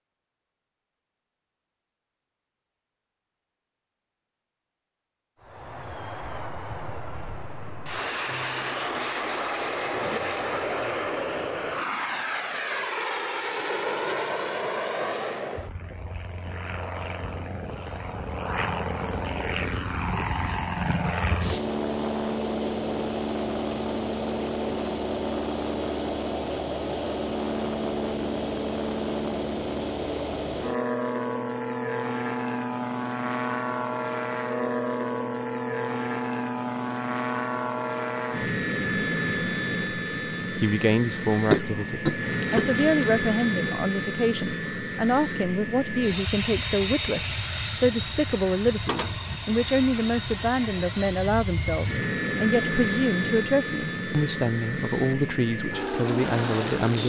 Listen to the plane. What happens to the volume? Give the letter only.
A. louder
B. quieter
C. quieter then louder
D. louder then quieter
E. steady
E.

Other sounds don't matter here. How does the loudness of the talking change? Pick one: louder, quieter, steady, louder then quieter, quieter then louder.
steady.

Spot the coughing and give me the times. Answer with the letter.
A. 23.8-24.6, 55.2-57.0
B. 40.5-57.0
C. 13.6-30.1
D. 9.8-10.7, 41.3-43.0
D.